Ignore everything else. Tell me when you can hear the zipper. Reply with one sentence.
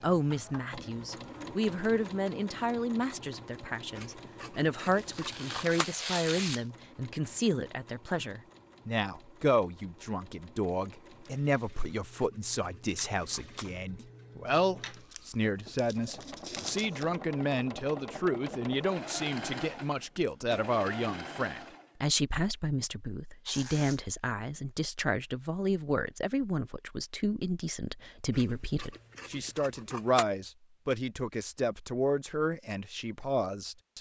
The zipper can't be heard in this clip.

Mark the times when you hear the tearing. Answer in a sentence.
You can hear the tearing from 4.9 to 6.7 s, from 14.9 to 17.1 s and from 23.4 to 24.0 s.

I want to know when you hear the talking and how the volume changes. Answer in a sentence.
The talking can be heard from 0.0 to 33.9 s, at a steady volume.